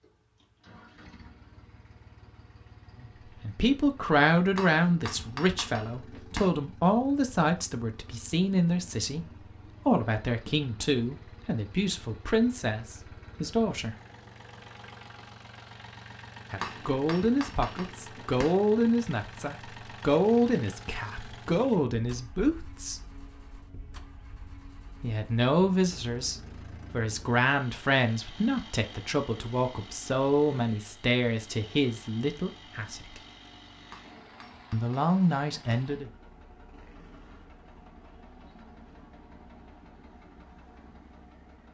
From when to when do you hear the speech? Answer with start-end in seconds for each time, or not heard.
3.0-13.9, 16.5-23.0, 25.0-33.2, 34.7-36.1.